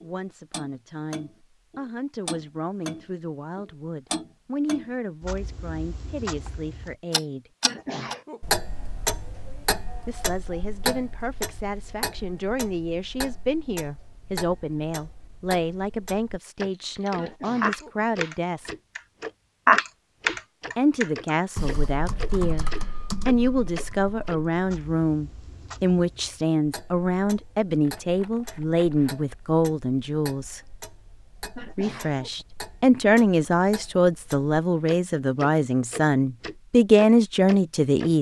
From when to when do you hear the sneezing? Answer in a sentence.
The sneezing can be heard from 7.6 to 8.5 s, from 17.1 to 18.1 s and from 31.6 to 32.5 s.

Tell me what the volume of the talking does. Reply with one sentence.
The volume of the talking goes up.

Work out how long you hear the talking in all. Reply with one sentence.
You can hear the talking for 32 seconds altogether.